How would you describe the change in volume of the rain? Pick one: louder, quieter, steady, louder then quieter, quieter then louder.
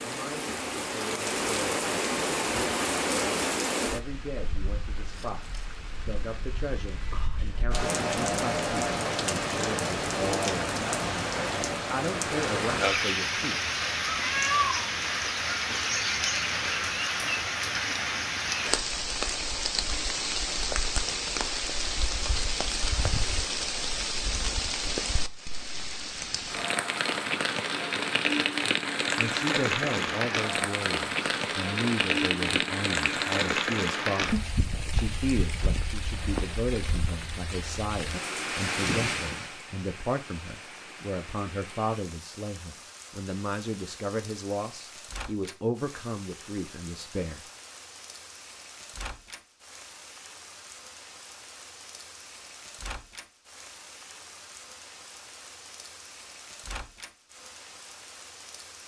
quieter.